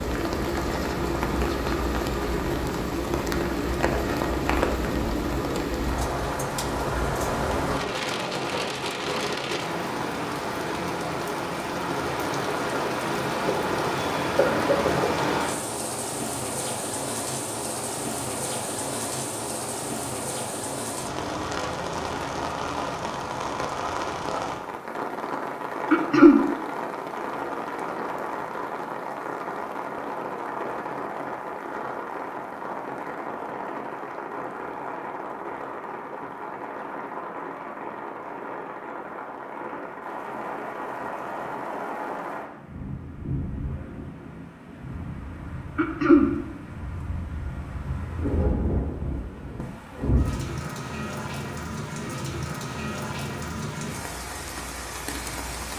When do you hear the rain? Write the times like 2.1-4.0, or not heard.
0.0-55.7.